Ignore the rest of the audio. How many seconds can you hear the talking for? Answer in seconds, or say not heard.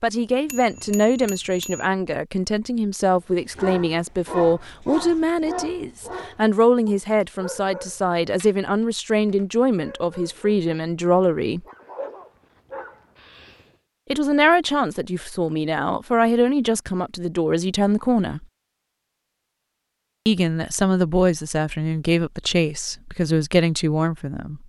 20 s.